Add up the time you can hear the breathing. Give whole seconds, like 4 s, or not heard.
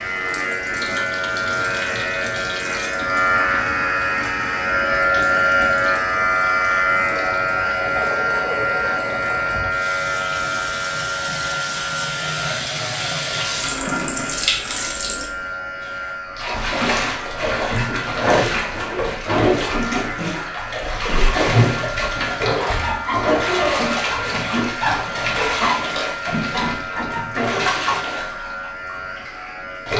not heard.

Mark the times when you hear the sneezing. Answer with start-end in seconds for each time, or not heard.
not heard.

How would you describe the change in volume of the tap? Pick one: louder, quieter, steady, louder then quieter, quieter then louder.
louder.